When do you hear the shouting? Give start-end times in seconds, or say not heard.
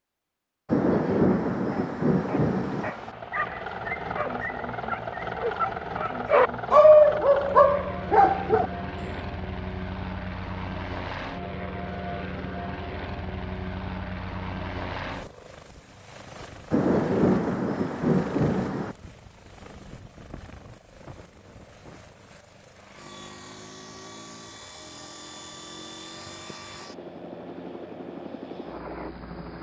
not heard.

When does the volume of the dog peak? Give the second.
7 s.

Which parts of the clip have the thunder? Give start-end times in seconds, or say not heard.
0.7-2.9, 16.7-18.9.